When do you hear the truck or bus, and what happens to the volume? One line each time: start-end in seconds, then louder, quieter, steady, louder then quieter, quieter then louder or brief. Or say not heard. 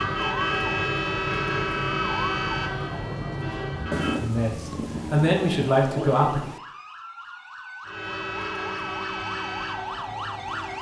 0.0-4.3 quieter
7.8-10.7 brief.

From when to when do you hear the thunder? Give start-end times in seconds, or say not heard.
3.9-6.6.